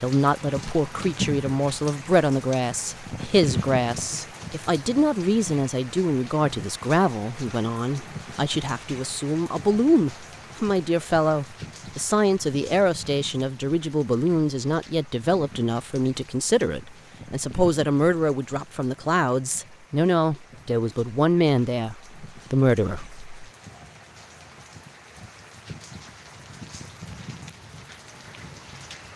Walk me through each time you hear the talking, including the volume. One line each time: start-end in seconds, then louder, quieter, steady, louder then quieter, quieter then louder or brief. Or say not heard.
0.0-23.2 steady.